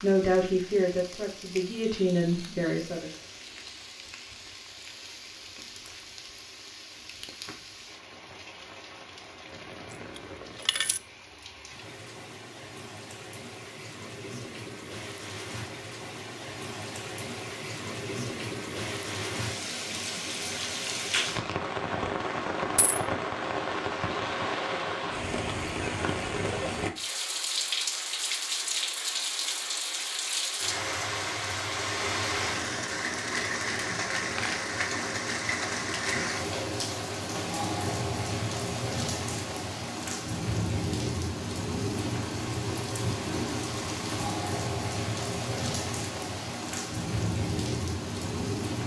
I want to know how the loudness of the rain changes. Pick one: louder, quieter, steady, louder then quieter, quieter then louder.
louder.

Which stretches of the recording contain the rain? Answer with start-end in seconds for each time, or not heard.
0.0-48.8.